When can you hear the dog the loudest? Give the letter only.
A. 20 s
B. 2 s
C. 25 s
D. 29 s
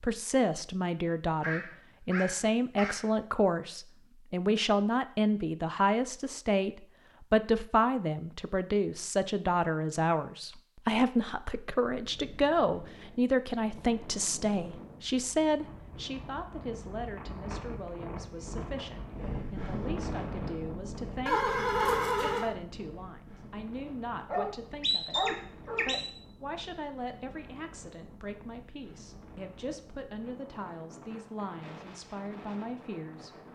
C.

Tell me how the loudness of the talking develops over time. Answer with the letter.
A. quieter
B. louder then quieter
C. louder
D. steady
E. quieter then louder
A.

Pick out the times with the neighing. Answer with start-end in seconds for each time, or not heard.
21.2-22.6.